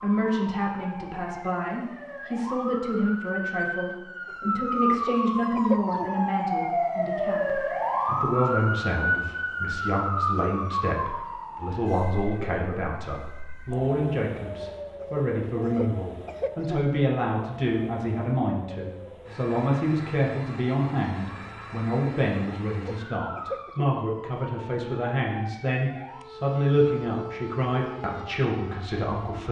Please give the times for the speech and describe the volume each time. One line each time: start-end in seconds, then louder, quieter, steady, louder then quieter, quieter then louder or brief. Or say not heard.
0.0-29.4 steady.